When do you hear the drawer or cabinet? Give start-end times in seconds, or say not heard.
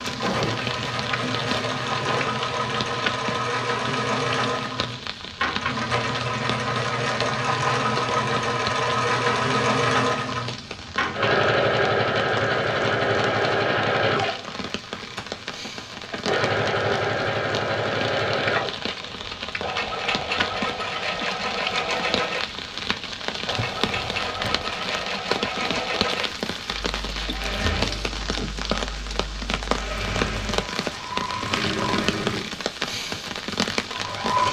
0.2-2.2, 23.5-24.7.